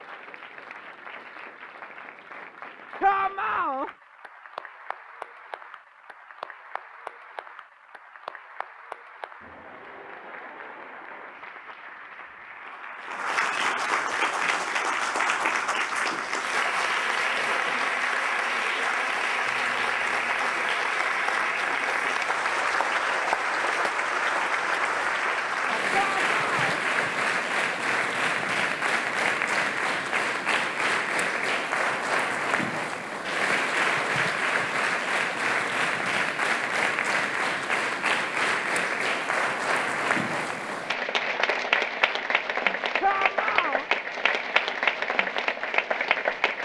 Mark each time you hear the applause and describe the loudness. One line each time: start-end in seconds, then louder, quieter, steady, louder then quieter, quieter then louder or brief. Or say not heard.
0.0-46.5 louder.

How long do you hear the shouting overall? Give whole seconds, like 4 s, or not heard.
3 s.